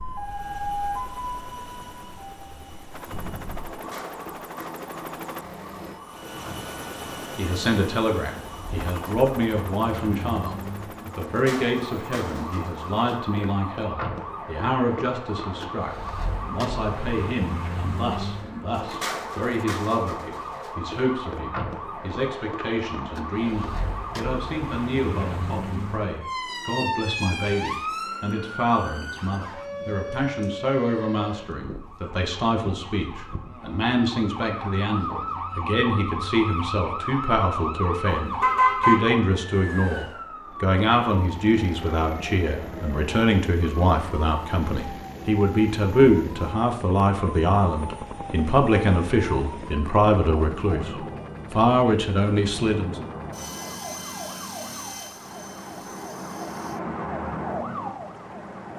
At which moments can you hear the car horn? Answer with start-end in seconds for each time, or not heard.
38.0-39.0.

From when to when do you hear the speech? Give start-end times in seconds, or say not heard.
7.3-53.0.